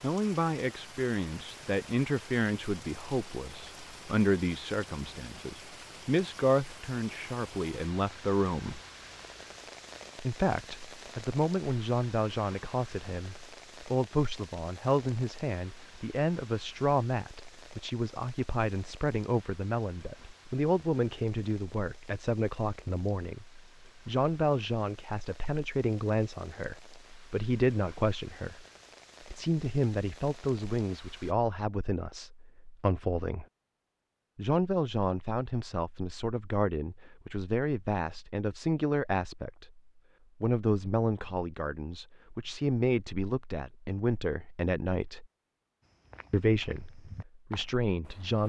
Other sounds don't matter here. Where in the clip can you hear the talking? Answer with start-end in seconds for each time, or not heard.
0.0-8.8, 10.2-28.6, 29.2-33.5, 34.4-45.2, 46.3-48.4.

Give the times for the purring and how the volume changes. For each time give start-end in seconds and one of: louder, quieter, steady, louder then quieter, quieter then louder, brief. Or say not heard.
not heard.